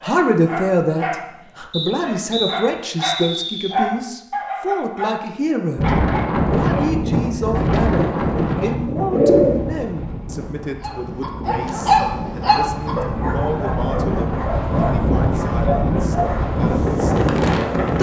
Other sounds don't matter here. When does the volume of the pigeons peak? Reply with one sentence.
The loudest moment of the pigeons is at 9 seconds.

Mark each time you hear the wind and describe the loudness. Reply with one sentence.
You can hear the wind from 5.8 to 17.9 s, getting quieter then louder.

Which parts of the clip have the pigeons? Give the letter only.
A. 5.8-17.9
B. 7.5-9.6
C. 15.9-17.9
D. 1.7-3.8
B.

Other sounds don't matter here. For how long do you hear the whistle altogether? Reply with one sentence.
The whistle can be heard for 2 seconds in total.